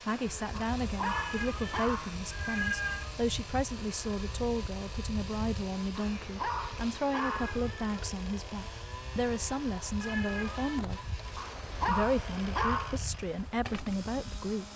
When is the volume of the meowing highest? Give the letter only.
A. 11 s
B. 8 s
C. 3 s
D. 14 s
C.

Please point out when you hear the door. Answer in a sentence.
You can't hear the door here.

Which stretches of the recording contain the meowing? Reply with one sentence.
You can hear the meowing from 1.0 to 3.1 s, from 7.1 to 8.1 s and from 10.0 to 10.8 s.